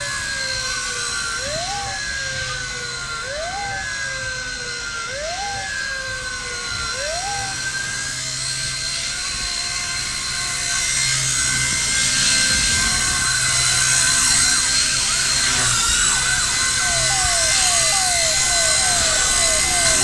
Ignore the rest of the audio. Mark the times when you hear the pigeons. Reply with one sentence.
The pigeons can't be heard in this clip.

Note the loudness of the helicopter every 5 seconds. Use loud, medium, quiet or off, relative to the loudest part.
medium, medium, loud, loud.